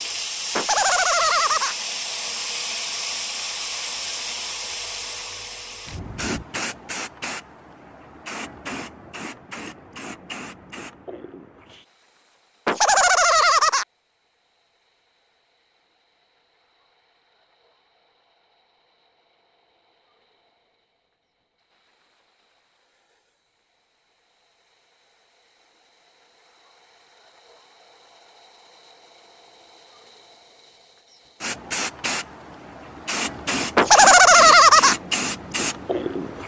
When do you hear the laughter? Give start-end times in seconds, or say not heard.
0.6-1.8, 12.7-13.8, 33.8-35.0.